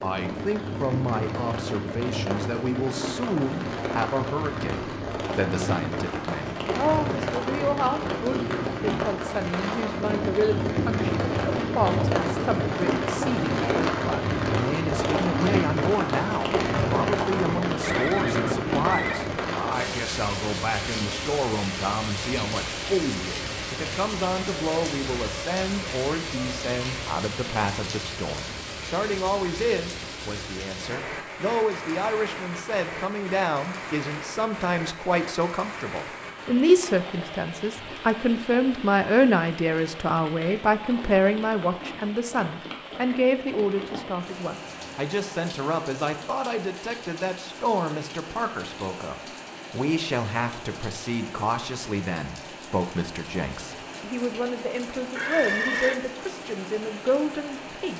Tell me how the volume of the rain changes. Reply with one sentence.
The loudness of the rain goes down.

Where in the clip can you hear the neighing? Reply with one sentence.
The neighing can be heard from 17.8 to 19.2 s and from 55.1 to 56.0 s.